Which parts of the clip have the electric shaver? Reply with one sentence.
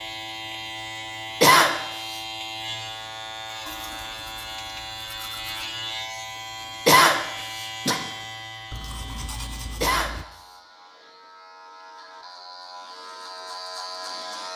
You can hear the electric shaver from 0.0 to 14.5 s.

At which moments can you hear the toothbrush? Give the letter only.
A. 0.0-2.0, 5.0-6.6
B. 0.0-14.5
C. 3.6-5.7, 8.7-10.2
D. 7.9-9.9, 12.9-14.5
C.